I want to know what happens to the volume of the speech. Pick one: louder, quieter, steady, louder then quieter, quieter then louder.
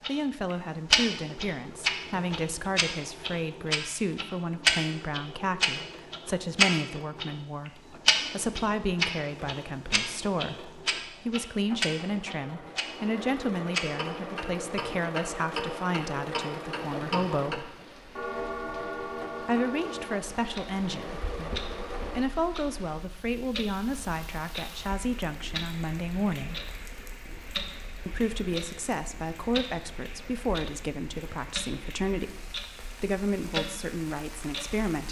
steady.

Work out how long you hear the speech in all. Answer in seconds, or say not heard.
32 s.